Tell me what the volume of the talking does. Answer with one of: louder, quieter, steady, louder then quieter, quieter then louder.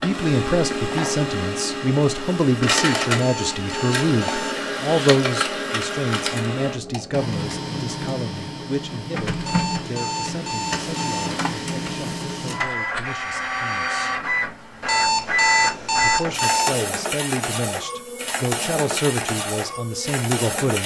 quieter then louder.